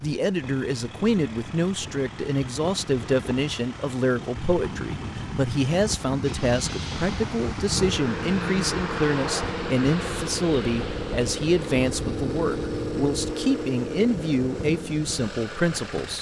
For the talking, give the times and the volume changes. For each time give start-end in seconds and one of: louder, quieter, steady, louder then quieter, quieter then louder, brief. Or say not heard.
0.0-16.1 steady.